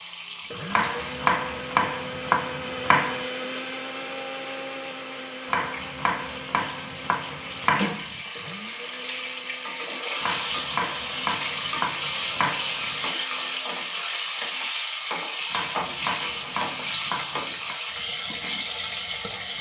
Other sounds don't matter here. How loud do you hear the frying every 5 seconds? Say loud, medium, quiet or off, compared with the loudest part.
medium, medium, loud, loud.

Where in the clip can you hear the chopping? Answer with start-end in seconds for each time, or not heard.
0.7-3.2, 5.5-8.2, 10.2-13.1, 15.5-17.8.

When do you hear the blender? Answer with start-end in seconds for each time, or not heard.
0.0-13.8.